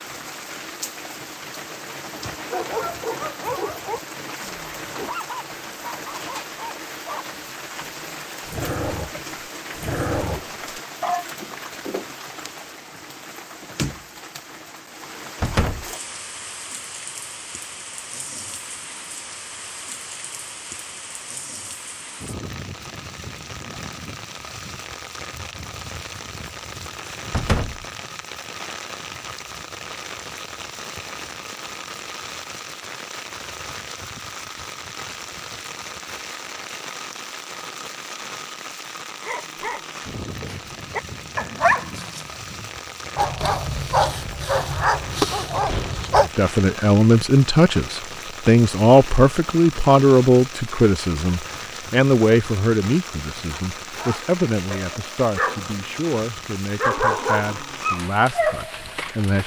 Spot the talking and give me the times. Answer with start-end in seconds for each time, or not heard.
46.2-59.4.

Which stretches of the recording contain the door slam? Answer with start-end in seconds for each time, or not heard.
15.4-15.8, 27.3-27.8, 45.6-46.1.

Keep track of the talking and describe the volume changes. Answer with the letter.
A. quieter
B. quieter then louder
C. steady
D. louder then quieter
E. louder
A.